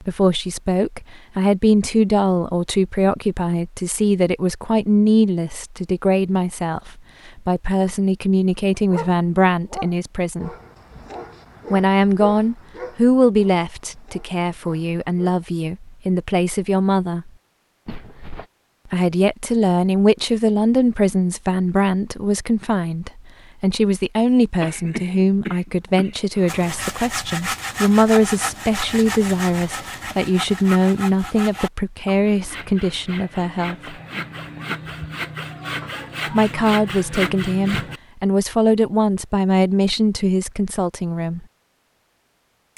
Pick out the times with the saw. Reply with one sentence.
The saw can be heard from 26.4 to 38.0 s.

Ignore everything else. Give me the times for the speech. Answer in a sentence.
The speech can be heard from 0.0 to 10.5 s, from 11.7 to 17.3 s, from 18.9 to 34.0 s and from 36.3 to 41.5 s.